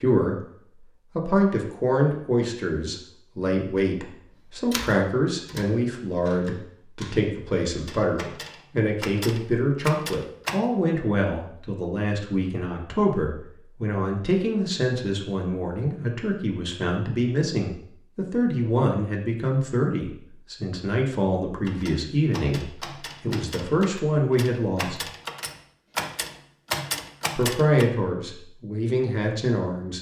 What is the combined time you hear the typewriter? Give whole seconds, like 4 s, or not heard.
12 s.